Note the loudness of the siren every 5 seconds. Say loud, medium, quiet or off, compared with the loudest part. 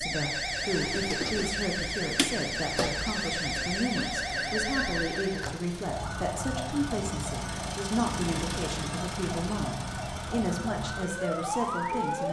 loud, medium, loud.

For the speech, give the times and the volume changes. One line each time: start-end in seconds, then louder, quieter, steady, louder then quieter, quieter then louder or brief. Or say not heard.
0.0-12.2 steady.